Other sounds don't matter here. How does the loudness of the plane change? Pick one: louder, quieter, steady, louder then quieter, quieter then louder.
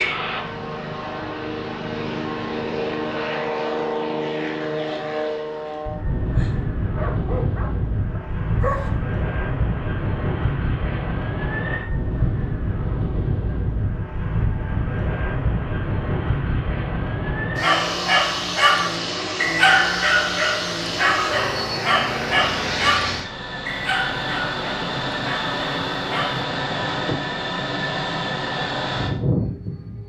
steady.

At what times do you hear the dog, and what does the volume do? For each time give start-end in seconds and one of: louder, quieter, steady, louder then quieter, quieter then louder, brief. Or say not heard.
6.2-8.9 brief
17.6-26.4 quieter.